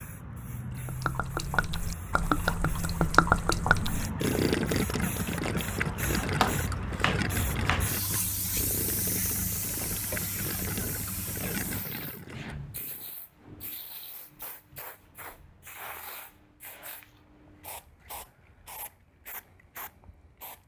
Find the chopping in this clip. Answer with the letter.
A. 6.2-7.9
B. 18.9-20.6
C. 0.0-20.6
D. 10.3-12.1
A.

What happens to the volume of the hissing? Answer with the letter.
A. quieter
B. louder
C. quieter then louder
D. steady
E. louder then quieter
A.